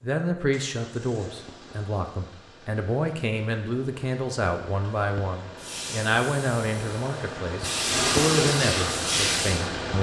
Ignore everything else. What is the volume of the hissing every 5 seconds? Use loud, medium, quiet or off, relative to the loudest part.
off, loud.